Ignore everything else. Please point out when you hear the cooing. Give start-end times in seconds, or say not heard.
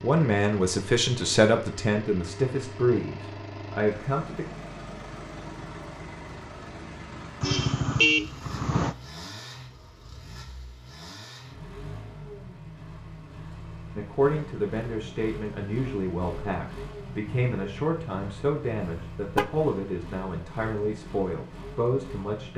not heard.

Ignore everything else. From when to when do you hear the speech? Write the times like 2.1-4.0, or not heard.
0.0-4.5, 13.9-22.5.